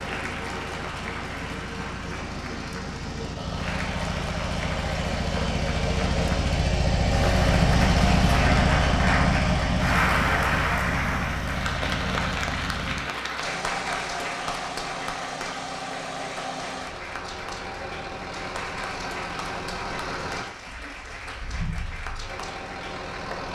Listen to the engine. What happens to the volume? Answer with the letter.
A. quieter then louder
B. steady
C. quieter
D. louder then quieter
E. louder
D.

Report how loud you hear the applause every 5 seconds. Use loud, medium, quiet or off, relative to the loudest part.
medium, loud, loud, medium, medium.